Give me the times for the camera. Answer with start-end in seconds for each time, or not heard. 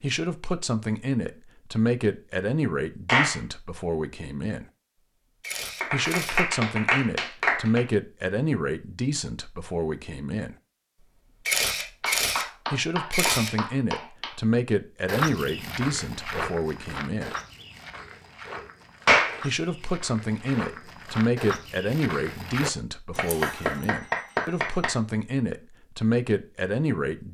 5.4-6.5, 11.4-12.4, 13.1-13.5, 23.1-23.9.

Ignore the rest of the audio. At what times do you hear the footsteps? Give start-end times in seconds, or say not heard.
15.1-22.7.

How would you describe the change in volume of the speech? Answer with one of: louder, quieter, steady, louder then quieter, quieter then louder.
steady.